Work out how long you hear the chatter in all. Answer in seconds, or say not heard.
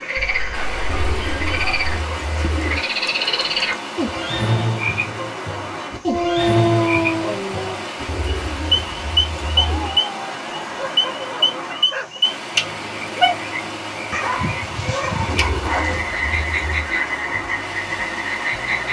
not heard.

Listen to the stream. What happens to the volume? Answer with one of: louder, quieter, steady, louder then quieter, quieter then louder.
steady.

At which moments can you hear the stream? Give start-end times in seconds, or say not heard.
0.0-18.8.